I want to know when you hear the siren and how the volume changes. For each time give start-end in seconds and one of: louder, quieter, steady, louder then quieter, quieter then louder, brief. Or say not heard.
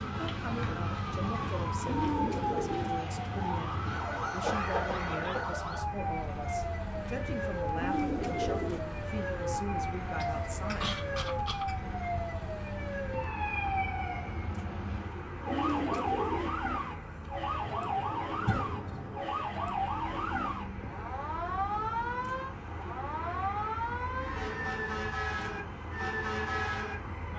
0.0-27.3 steady.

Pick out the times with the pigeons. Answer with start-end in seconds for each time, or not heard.
1.8-2.9, 7.8-8.8, 15.4-16.5, 24.3-25.0.